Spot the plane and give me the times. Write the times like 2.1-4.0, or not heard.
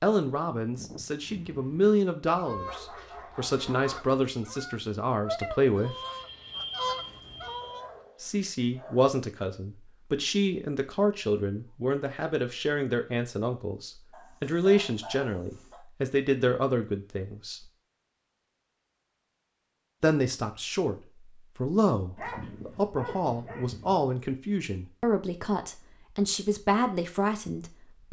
5.8-7.8.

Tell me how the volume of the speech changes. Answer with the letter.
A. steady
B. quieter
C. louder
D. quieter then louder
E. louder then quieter
A.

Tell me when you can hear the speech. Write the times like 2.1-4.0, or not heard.
0.0-6.0, 8.2-17.7, 20.0-28.0.